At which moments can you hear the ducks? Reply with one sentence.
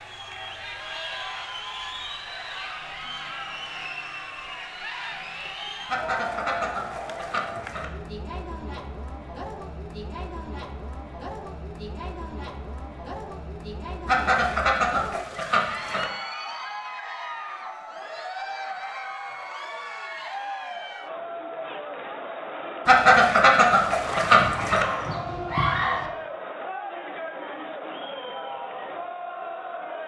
The ducks can be heard from 5.8 to 7.8 s, from 14.1 to 16.1 s and from 22.9 to 24.9 s.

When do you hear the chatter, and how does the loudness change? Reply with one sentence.
You can hear the chatter from 0.0 to 30.0 s, at a steady volume.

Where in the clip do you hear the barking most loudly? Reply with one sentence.
The loudest moment of the barking is at 26 seconds.